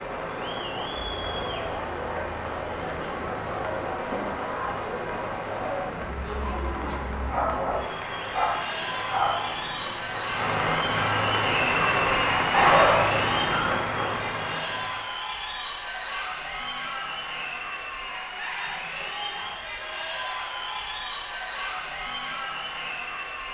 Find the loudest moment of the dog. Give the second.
13 s.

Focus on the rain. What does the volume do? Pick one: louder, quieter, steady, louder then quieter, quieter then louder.
louder.